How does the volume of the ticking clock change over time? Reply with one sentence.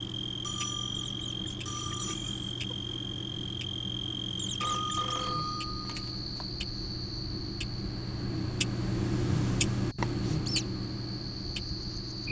The volume of the ticking clock goes up.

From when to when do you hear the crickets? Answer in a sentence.
You can hear the crickets from 0.0 to 12.2 s.